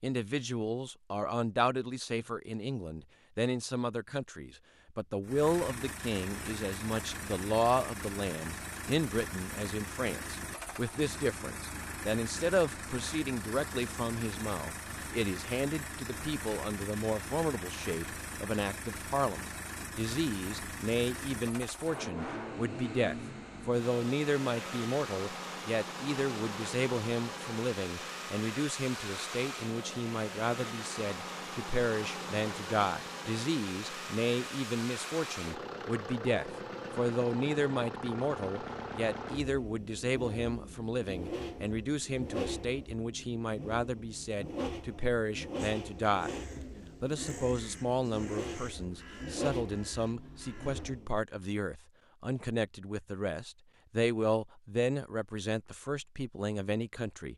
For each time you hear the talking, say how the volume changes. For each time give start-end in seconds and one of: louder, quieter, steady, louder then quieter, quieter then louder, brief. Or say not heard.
0.0-57.3 steady.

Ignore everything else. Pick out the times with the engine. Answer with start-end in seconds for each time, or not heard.
5.2-51.1.